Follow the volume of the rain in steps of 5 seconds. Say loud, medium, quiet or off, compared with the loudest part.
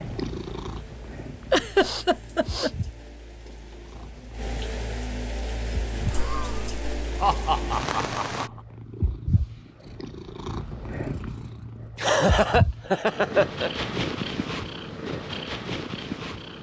medium, loud, off, off.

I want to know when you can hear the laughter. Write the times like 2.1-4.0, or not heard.
1.5-2.7, 6.0-8.5, 11.9-13.7.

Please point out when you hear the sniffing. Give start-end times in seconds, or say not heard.
1.8-2.8.